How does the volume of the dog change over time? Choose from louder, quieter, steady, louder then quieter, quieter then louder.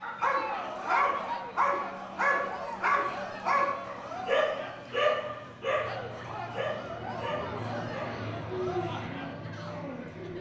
quieter.